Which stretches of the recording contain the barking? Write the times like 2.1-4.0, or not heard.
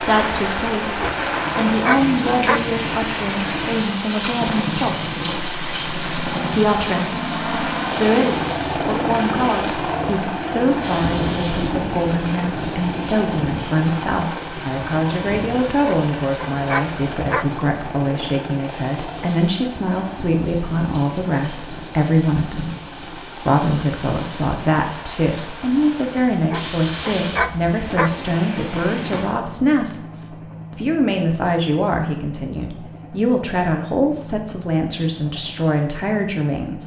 1.0-2.6, 15.8-17.5, 26.5-28.1.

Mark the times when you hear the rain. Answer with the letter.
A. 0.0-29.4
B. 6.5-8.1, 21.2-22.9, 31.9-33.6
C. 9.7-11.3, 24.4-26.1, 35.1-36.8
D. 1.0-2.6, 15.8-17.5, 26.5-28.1
A.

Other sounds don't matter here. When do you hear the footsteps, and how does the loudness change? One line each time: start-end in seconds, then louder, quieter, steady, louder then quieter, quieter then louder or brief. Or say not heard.
not heard.